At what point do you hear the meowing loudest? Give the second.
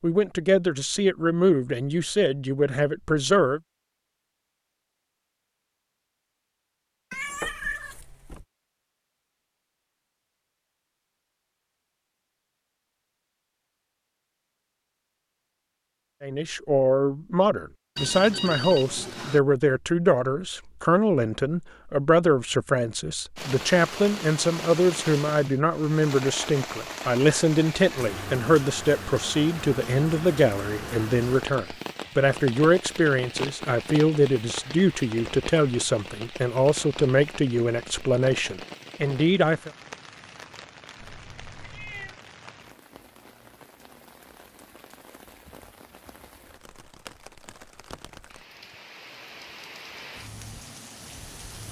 8 s.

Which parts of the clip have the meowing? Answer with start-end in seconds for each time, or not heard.
7.1-8.4, 41.0-42.2.